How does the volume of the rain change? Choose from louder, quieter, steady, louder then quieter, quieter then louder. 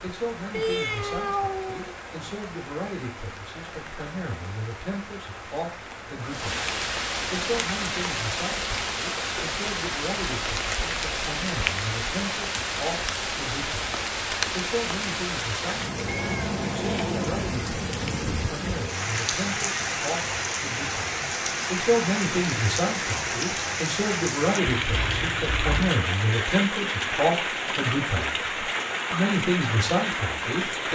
louder.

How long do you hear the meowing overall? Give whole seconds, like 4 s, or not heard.
4 s.